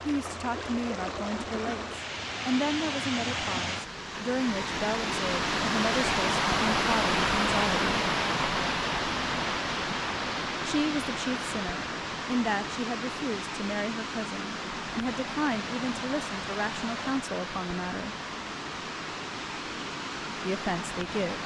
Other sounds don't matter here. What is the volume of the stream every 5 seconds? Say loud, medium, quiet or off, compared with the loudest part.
medium, loud, medium, medium, medium.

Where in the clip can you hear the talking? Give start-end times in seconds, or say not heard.
0.1-8.1, 10.6-18.1, 20.4-21.4.